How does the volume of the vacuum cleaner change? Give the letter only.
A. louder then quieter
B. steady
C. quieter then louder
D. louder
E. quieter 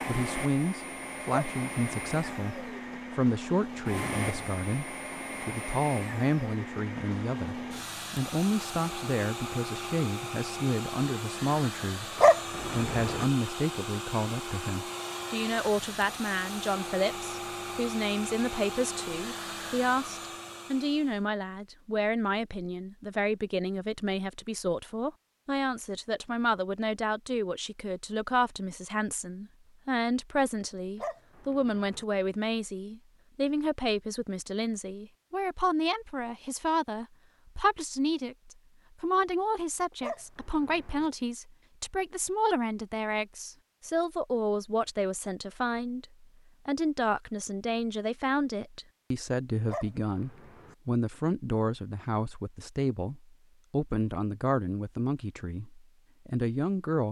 B.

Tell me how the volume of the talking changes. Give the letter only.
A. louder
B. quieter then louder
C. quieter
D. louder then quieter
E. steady
E.